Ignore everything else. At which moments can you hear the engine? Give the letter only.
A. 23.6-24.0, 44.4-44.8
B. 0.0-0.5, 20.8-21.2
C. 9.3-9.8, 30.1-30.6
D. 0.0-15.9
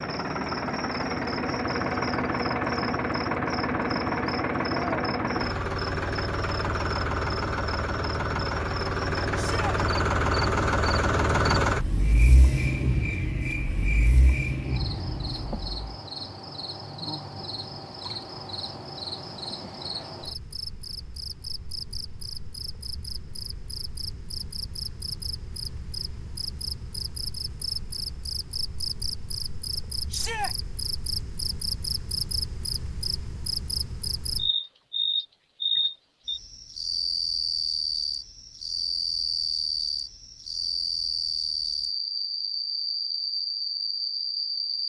D.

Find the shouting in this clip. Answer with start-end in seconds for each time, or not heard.
9.3-9.8, 30.1-30.6.